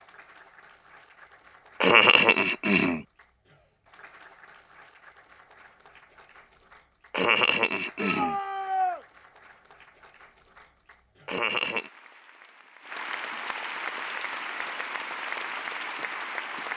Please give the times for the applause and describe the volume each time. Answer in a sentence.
The applause can be heard from 0.0 to 16.7 s, getting louder.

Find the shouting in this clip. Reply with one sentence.
The shouting can be heard from 8.0 to 9.0 s.